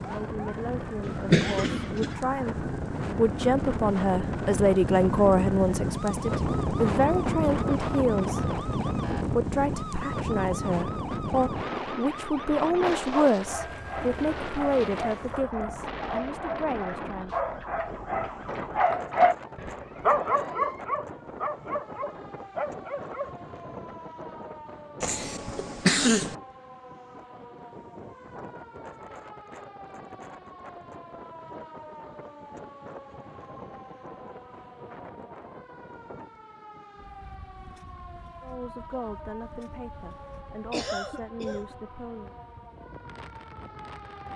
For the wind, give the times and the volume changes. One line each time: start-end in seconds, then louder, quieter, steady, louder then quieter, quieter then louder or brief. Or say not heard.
0.0-44.3 quieter.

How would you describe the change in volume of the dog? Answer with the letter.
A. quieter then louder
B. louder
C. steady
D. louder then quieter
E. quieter
D.